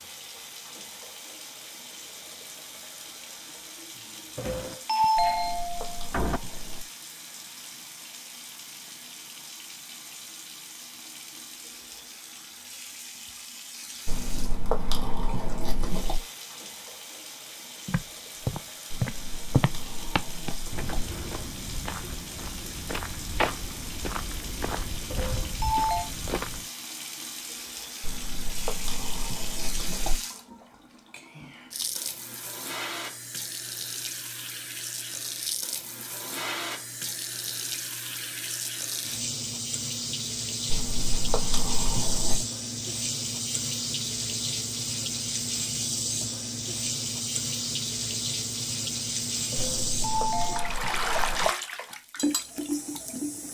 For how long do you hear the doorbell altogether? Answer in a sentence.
The doorbell can be heard for 4 seconds in total.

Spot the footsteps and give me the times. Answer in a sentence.
You can hear the footsteps from 17.9 to 26.7 s.